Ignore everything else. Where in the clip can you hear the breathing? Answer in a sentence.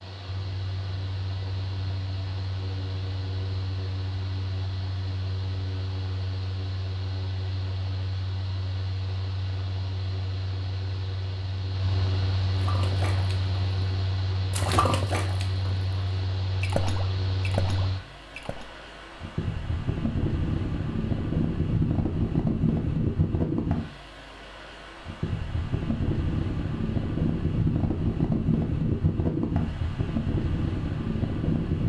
You can't hear the breathing here.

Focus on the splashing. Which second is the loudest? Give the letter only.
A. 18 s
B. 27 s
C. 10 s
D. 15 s
D.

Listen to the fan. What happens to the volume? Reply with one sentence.
The volume of the fan goes up.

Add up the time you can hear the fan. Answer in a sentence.
The fan can be heard for 32 seconds in total.